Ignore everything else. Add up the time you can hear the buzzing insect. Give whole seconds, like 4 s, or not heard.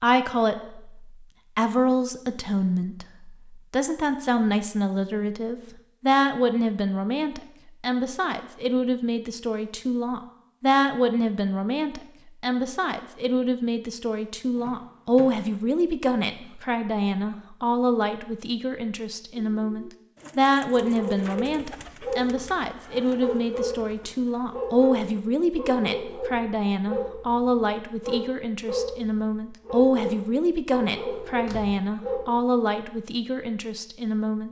not heard.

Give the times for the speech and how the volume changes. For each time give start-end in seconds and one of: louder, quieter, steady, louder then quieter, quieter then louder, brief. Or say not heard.
0.0-34.4 steady.